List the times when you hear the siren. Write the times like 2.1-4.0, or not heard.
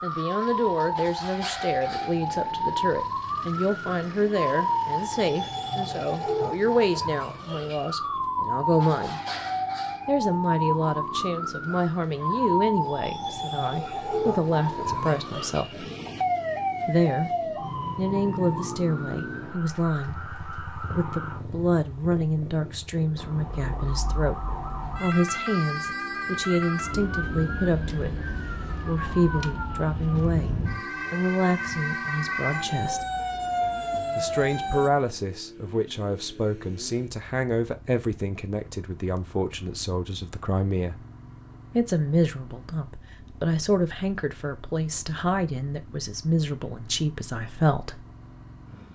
0.0-21.4, 23.1-34.9.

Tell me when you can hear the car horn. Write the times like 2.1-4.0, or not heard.
not heard.